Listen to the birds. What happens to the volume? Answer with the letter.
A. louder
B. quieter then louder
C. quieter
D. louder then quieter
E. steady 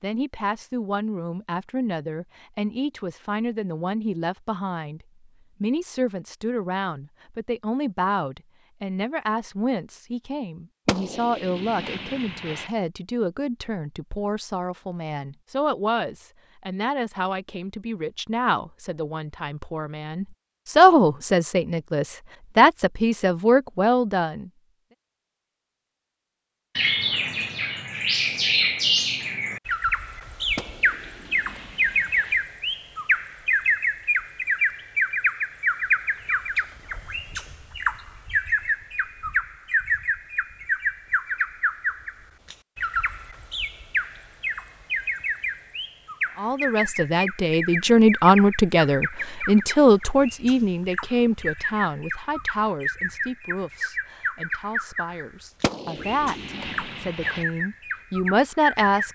C.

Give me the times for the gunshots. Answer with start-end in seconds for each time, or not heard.
10.8-12.7, 30.6-32.4, 55.6-57.5.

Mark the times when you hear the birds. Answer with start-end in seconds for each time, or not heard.
26.8-59.0.